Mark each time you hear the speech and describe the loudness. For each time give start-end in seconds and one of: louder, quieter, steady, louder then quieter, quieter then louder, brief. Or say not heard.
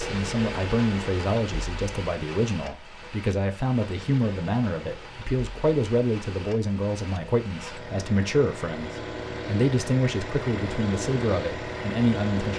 0.0-12.5 steady.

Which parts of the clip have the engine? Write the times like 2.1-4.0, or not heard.
0.0-12.5.